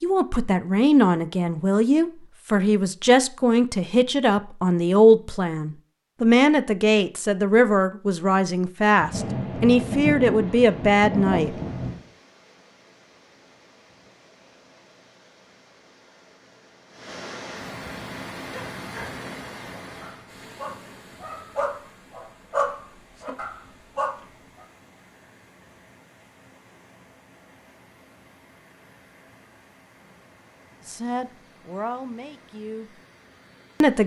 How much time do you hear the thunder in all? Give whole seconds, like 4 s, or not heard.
3 s.